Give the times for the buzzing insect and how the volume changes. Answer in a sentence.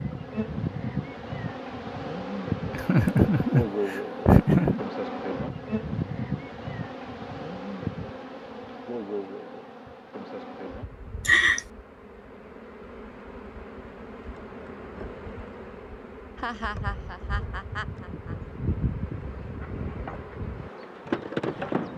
You can hear the buzzing insect from 0.0 to 21.9 s, getting quieter then louder.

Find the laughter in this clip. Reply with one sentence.
You can hear the laughter from 2.8 to 4.8 s, from 11.2 to 11.7 s and from 16.4 to 18.4 s.